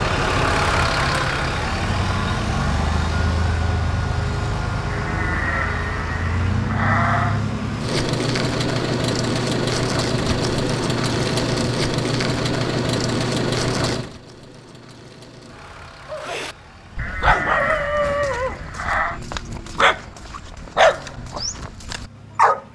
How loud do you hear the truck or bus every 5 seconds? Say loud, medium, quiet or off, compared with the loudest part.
loud, loud, loud, quiet, quiet.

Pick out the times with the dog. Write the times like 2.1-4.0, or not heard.
16.1-22.6.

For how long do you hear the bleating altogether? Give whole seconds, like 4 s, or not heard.
5 s.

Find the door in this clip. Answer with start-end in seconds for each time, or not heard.
not heard.